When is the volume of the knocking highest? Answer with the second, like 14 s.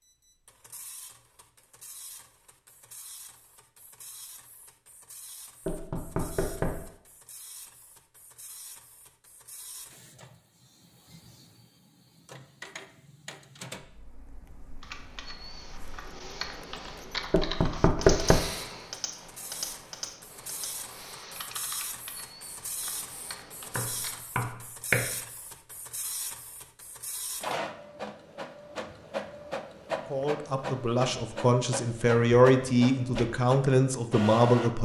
18 s.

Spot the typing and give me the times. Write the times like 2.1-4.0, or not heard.
14.8-24.2.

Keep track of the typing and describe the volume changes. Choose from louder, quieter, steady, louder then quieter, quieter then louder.
louder then quieter.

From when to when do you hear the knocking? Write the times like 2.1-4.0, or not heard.
5.7-6.8, 17.3-18.4, 23.8-25.1.